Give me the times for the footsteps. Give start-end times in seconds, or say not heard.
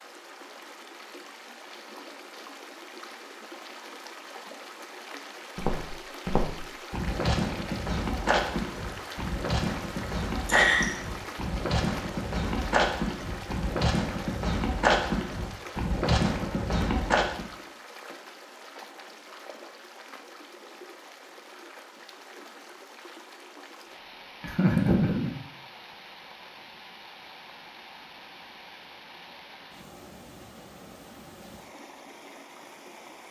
5.5-17.5.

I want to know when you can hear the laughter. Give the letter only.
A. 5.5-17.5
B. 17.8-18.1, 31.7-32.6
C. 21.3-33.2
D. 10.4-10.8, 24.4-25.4
D.